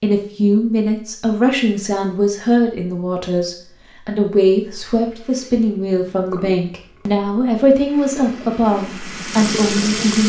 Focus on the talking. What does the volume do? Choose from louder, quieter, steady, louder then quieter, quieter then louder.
steady.